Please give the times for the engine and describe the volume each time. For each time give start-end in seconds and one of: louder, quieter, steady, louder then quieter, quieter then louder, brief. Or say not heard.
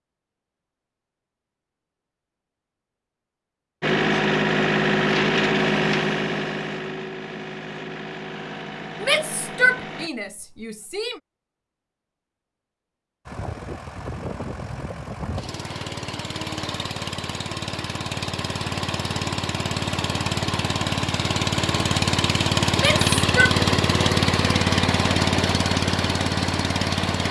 3.8-10.1 quieter
13.2-27.2 louder.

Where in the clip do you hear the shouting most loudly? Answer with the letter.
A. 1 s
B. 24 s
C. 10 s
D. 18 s
C.